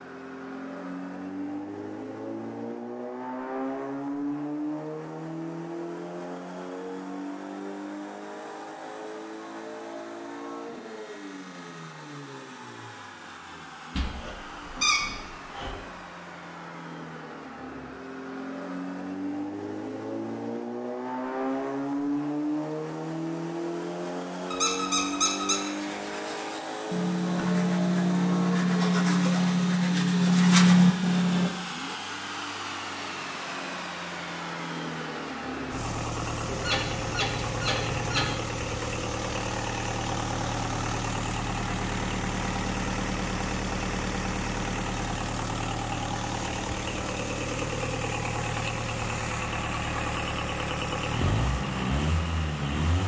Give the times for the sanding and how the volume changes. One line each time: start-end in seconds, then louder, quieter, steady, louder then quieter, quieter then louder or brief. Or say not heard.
25.4-31.5 louder.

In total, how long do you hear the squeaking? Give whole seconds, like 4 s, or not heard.
5 s.